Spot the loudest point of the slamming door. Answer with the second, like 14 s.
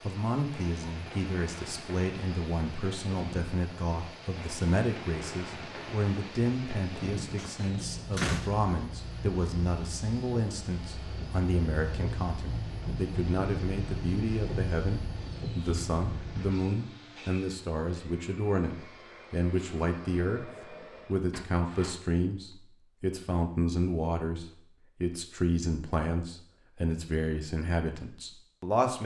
8 s.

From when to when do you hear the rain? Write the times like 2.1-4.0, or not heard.
0.0-16.6.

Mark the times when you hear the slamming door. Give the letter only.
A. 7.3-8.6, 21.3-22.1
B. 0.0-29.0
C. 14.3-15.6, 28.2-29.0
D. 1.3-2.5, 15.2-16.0
A.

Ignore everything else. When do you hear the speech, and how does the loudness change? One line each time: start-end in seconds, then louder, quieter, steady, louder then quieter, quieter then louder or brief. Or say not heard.
0.0-29.0 steady.